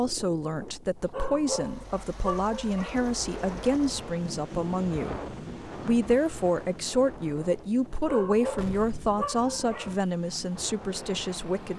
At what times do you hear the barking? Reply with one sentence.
You can hear the barking from 1.1 to 3.0 s and from 8.1 to 9.9 s.